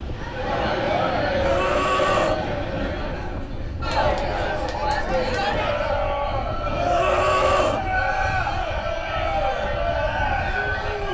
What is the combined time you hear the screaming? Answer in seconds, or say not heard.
2 s.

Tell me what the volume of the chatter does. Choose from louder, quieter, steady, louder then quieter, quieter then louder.
steady.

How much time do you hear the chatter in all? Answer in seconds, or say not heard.
11 s.